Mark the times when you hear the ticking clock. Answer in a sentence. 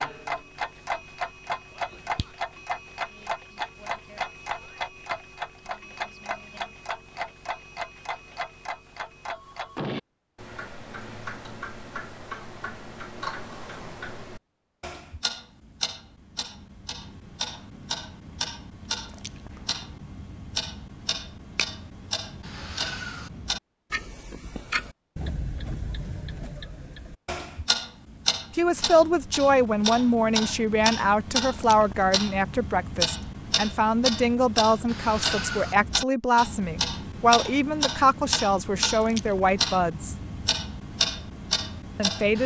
You can hear the ticking clock from 0.0 to 42.4 s.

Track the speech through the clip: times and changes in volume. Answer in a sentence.
The speech can be heard from 28.6 to 40.1 s, at a steady volume; and briefly from 42.0 to 42.4 s.